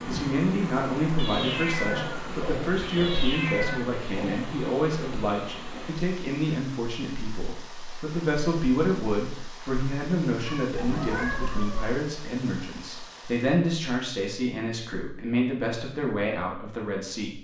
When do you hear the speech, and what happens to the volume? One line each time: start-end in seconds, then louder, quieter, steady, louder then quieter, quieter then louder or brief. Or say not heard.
0.1-17.3 steady.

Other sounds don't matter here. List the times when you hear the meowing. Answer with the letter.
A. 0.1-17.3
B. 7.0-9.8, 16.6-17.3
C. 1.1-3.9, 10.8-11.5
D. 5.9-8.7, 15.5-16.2
C.